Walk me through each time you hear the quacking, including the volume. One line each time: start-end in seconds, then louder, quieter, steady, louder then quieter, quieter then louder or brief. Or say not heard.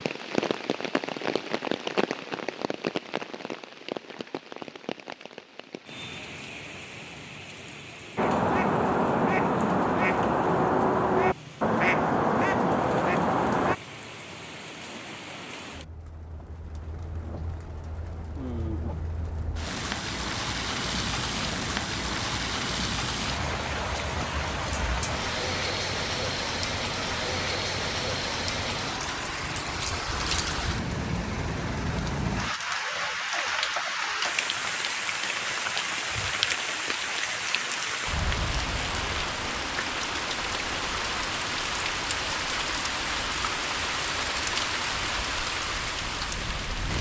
8.2-13.8 steady.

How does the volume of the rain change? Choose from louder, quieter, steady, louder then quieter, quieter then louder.
quieter then louder.